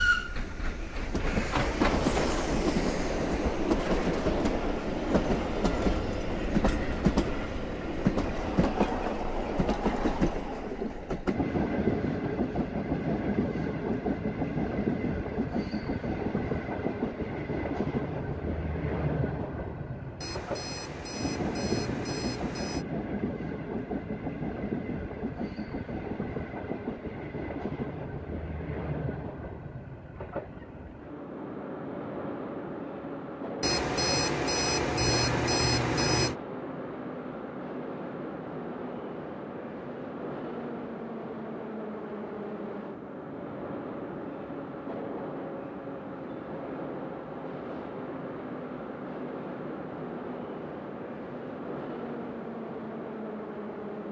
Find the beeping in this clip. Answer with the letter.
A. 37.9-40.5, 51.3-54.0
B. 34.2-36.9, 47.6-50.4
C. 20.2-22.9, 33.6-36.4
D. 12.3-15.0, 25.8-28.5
C.